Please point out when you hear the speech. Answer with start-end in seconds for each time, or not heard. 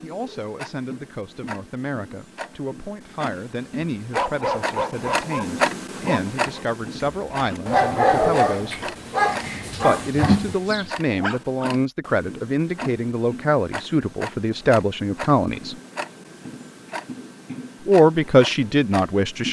0.0-8.9, 9.8-15.8, 17.9-19.4.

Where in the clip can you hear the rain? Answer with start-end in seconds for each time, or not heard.
not heard.